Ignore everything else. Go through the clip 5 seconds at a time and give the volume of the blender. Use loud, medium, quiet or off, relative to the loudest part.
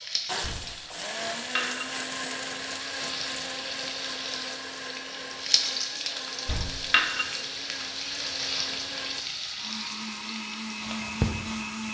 loud, medium, loud.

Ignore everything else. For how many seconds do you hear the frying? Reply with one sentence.
The frying can be heard for 12 seconds in total.